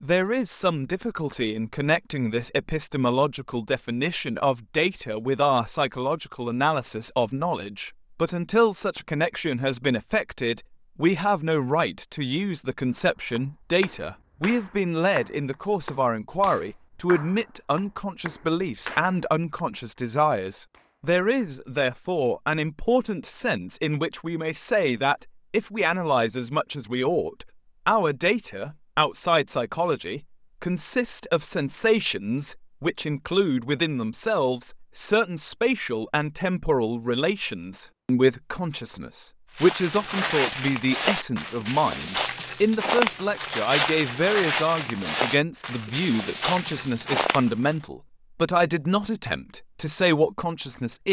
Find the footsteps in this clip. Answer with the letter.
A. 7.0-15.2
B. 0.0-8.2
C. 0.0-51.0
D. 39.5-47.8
D.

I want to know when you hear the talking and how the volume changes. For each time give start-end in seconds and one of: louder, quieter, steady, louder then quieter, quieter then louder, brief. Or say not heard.
0.0-51.0 steady.